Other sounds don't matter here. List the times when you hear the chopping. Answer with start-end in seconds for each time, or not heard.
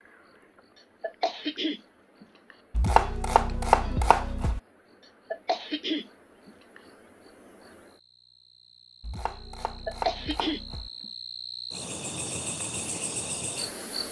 2.7-4.6, 9.0-10.9.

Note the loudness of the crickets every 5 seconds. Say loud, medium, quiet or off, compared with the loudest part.
quiet, quiet, loud.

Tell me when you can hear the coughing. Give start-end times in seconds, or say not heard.
1.0-2.5, 5.3-6.8, 9.8-11.1.